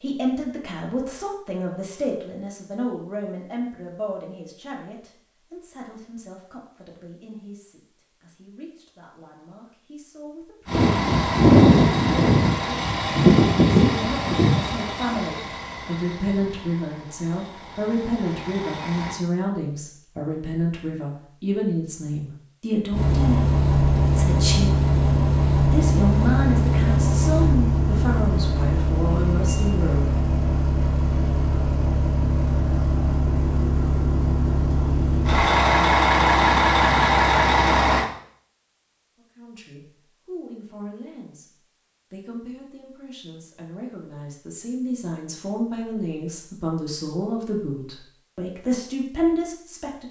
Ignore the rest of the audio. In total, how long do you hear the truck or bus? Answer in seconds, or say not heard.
24 s.